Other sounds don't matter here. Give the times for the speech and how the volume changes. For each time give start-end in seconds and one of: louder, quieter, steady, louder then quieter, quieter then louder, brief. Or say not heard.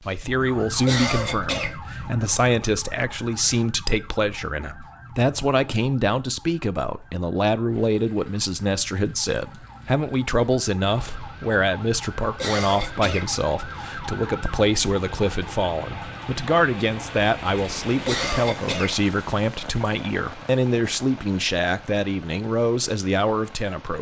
0.1-23.9 steady.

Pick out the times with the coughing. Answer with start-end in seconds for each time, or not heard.
0.8-1.7, 12.3-13.2, 18.0-18.9.